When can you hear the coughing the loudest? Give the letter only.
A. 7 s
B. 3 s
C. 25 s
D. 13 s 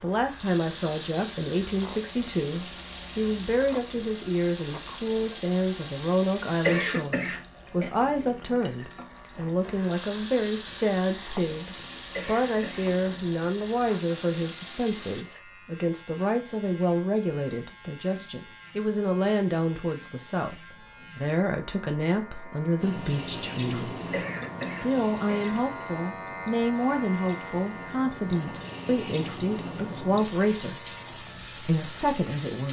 A.